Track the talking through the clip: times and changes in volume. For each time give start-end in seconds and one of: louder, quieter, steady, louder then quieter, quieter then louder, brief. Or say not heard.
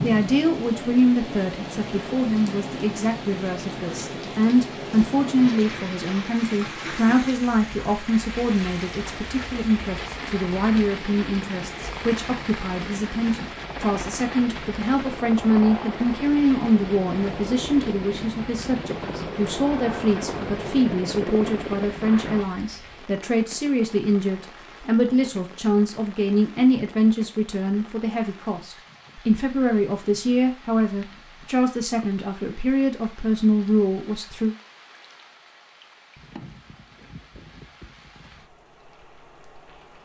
0.0-34.5 steady.